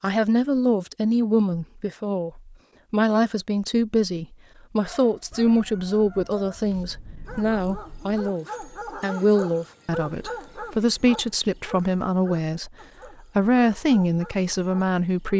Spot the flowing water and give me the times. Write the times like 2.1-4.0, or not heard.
not heard.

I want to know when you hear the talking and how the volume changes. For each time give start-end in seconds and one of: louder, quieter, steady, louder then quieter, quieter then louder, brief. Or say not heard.
0.0-12.7 steady
13.3-15.3 brief.